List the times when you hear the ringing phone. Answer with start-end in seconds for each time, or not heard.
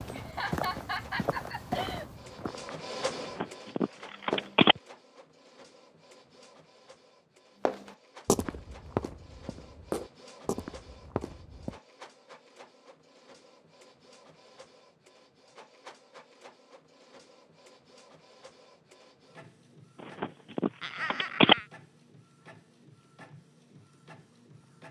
3.2-4.8, 20.0-21.6.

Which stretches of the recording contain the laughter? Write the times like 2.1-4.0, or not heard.
0.1-2.0, 20.8-21.6.